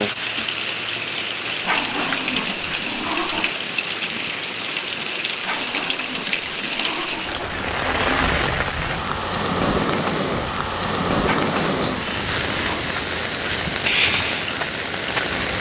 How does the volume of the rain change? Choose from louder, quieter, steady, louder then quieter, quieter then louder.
steady.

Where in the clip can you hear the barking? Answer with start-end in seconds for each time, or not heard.
1.6-3.5, 5.4-8.2, 11.2-12.8.